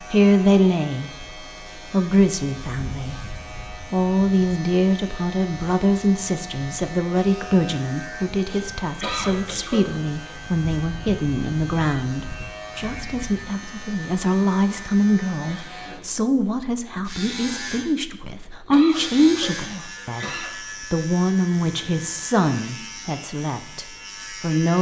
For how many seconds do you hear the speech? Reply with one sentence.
You can hear the speech for 25 seconds altogether.